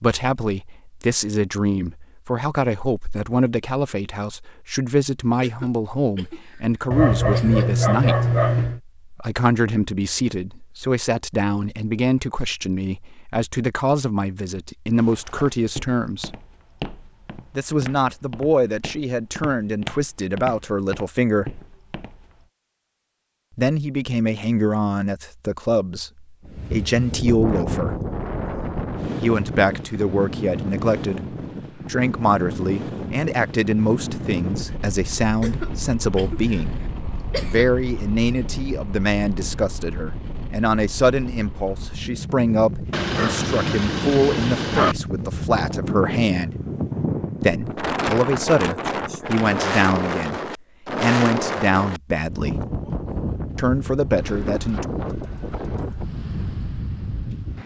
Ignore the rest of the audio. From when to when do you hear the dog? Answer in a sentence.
You can hear the dog from 6.9 to 8.8 s and from 42.9 to 45.0 s.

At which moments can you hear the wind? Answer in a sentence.
You can hear the wind from 26.4 to 57.6 s.